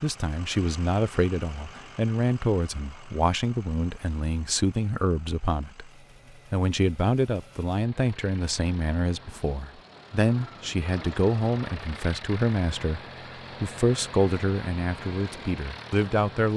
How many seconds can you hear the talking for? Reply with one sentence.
The talking can be heard for 15 seconds in total.